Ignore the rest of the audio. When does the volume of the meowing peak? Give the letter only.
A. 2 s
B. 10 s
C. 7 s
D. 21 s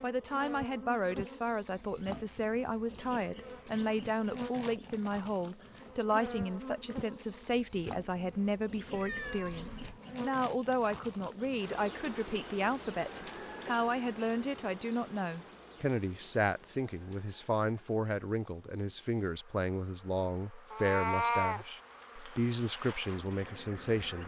D.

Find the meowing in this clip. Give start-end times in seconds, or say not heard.
8.9-10.0, 20.7-21.6.